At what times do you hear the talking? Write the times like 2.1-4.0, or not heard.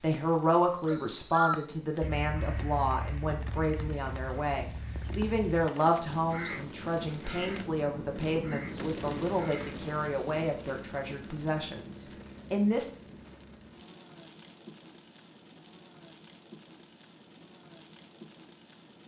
0.0-12.8.